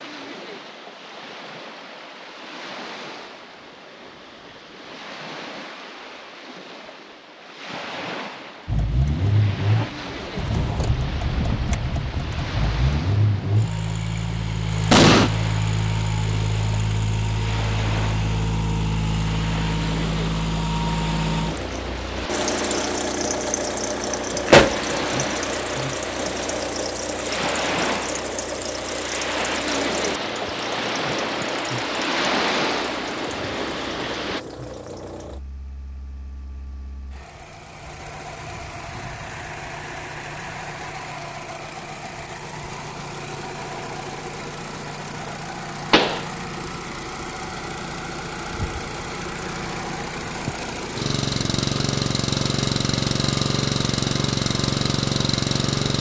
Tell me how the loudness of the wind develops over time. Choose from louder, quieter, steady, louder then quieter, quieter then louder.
louder.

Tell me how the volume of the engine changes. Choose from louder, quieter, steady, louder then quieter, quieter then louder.
quieter then louder.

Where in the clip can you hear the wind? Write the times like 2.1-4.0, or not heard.
0.0-34.4.